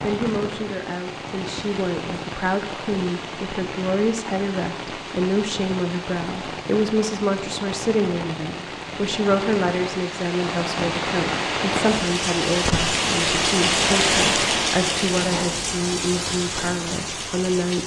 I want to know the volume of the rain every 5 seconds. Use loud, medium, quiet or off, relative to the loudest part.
medium, medium, loud, medium.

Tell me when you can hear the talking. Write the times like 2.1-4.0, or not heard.
0.0-17.8.